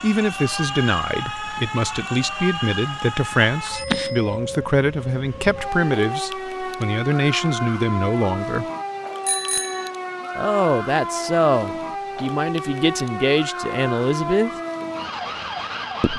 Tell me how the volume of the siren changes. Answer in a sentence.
The volume of the siren stays about the same.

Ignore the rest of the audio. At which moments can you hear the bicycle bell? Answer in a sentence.
You can hear the bicycle bell from 3.7 to 4.4 s and from 9.2 to 9.9 s.